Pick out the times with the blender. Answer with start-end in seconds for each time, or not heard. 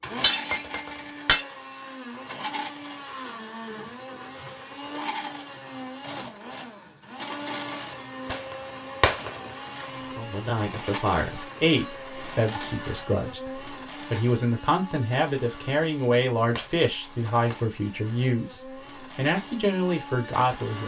0.0-20.8.